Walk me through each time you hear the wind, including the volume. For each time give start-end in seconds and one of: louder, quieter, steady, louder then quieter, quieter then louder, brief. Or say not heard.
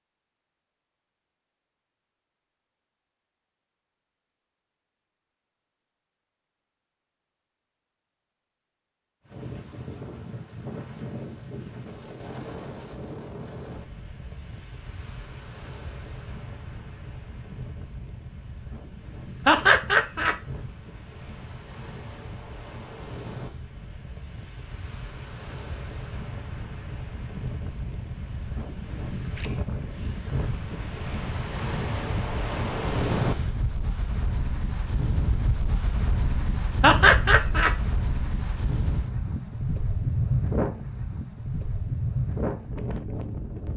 9.2-43.7 louder.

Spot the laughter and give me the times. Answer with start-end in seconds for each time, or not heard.
19.4-20.4, 36.8-37.8.